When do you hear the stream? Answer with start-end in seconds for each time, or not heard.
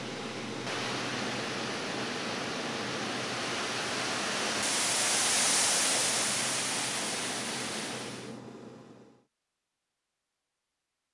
0.0-8.4.